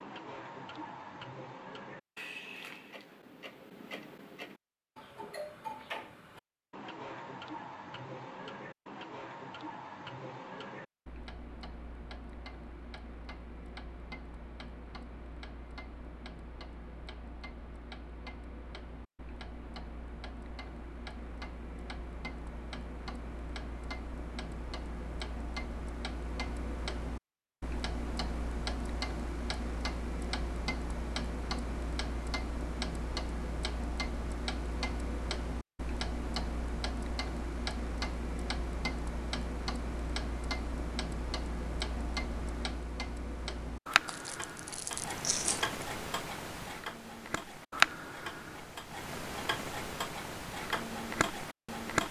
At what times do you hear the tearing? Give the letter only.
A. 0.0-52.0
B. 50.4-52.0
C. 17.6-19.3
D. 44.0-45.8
D.